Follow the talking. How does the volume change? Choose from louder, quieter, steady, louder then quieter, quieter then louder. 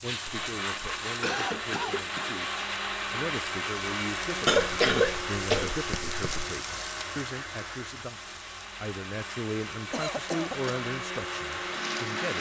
louder.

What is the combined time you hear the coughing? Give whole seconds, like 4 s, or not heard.
4 s.